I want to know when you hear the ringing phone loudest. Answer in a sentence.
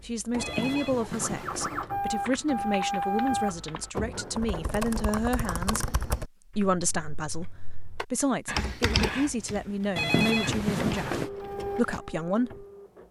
The loudest moment of the ringing phone is at 10 seconds.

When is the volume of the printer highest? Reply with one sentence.
The volume of the printer peaks at 3 seconds.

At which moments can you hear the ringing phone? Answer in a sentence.
The ringing phone can be heard from 0.3 to 1.7 s and from 9.9 to 11.3 s.